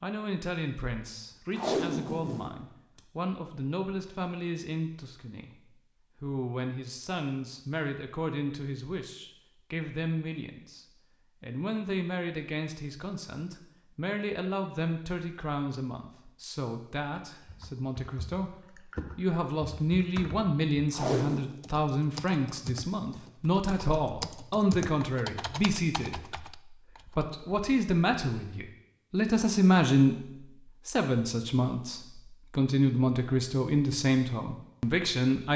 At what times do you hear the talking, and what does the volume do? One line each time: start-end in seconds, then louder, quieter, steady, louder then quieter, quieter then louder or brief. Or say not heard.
0.0-35.5 louder.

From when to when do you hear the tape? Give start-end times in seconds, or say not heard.
1.6-3.0, 20.9-21.5.